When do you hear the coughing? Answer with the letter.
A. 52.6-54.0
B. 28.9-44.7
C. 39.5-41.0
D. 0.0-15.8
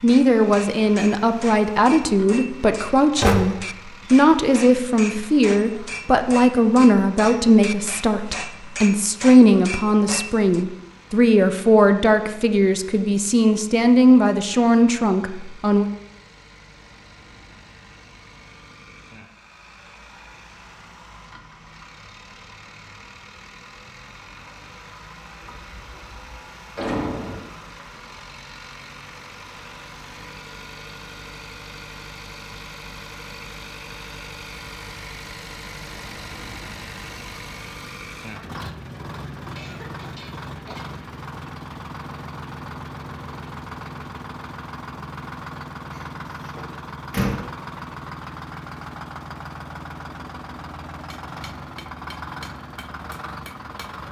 C.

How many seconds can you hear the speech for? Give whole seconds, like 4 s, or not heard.
16 s.